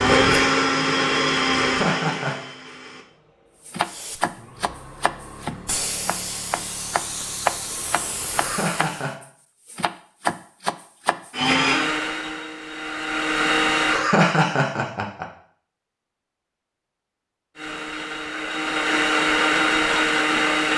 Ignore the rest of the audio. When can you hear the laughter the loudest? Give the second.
14 s.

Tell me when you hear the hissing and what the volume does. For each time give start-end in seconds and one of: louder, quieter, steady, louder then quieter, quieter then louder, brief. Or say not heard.
3.8-9.2 louder.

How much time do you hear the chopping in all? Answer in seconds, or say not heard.
8 s.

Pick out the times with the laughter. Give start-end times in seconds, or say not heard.
1.6-2.4, 8.3-9.2, 13.8-15.2.